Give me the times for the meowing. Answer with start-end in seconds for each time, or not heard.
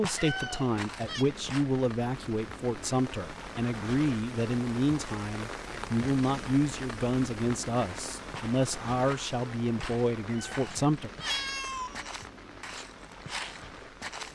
0.1-1.2, 10.2-12.2.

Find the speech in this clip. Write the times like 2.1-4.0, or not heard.
0.0-11.1.